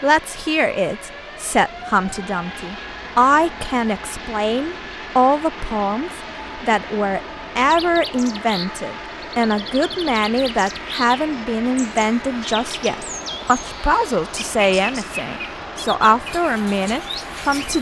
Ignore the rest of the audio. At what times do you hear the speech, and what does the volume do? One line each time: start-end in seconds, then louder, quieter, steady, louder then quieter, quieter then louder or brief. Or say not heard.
0.0-17.7 steady.